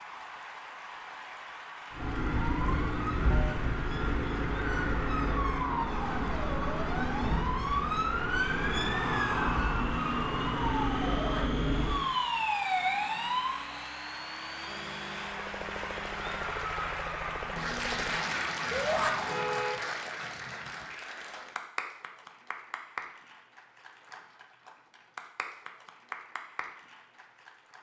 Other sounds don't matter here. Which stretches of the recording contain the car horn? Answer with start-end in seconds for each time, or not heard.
3.3-4.0, 14.7-16.4, 19.2-20.9.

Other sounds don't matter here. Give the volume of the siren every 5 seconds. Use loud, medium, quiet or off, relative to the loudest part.
loud, loud, loud, medium, off, off.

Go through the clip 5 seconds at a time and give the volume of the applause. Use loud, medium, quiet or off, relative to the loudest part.
medium, medium, medium, loud, medium, medium.